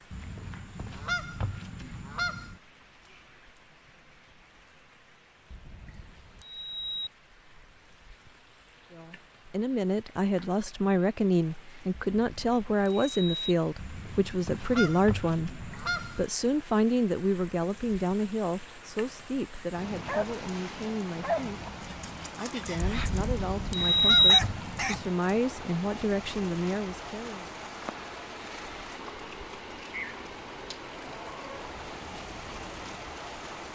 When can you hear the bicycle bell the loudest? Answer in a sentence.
The volume of the bicycle bell peaks at 24 seconds.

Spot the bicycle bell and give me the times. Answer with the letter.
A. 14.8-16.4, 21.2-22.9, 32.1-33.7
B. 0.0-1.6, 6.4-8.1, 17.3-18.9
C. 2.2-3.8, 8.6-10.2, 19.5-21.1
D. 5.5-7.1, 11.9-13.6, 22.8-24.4
D.